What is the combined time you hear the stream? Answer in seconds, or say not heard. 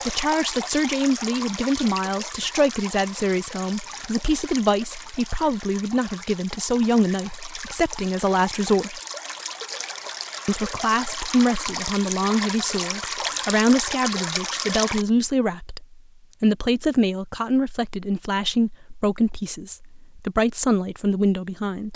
15 s.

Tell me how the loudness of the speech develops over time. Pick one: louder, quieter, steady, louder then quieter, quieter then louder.
steady.